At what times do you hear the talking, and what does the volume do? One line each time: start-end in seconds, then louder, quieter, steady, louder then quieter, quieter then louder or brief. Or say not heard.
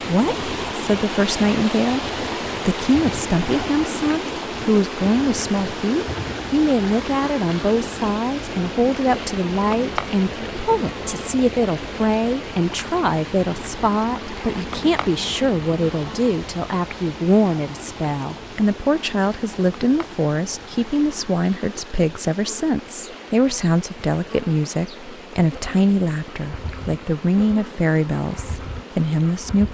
0.1-29.7 steady.